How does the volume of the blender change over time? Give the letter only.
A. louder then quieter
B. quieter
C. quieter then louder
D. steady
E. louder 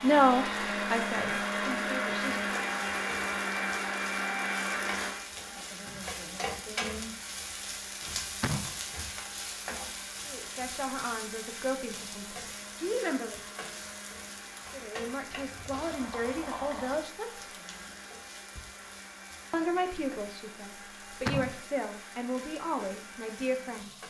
B.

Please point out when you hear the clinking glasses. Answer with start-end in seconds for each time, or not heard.
not heard.